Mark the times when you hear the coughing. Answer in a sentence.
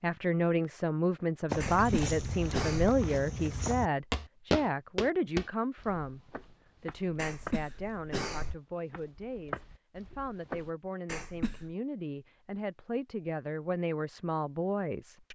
The coughing can be heard from 1.6 to 3.0 s, from 7.2 to 8.6 s and from 11.1 to 11.7 s.